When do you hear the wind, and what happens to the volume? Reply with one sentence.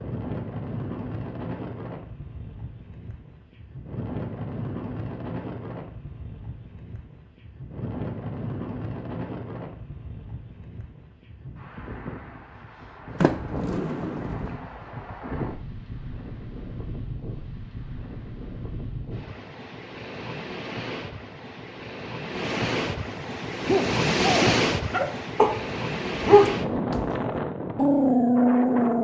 The wind can be heard from 0.0 to 29.0 s, getting louder.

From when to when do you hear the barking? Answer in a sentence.
The barking can be heard from 23.6 to 29.0 s.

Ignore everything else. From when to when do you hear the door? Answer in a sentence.
The door can be heard from 13.2 to 14.6 s.